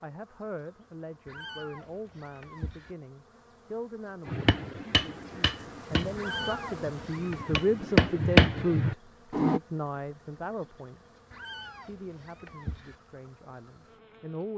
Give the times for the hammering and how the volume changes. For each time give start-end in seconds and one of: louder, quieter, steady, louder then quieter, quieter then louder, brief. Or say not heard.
4.2-9.6 quieter then louder.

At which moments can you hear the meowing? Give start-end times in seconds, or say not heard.
1.2-3.0, 6.2-7.7, 11.3-12.9.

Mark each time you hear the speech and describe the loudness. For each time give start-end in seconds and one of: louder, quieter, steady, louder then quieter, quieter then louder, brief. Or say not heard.
0.0-11.0 louder
11.8-14.5 brief.